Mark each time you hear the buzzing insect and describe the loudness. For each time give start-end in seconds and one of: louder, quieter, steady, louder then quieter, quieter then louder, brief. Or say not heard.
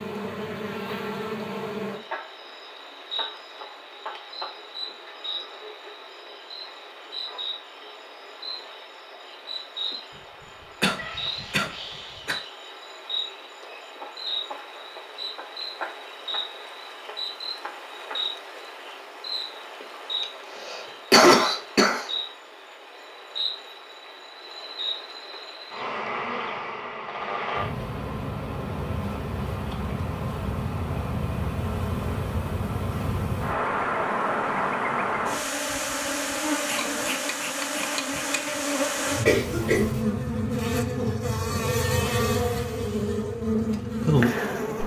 0.0-44.8 louder.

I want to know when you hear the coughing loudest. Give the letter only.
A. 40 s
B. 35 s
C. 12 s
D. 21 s
D.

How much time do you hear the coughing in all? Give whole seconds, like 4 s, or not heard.
4 s.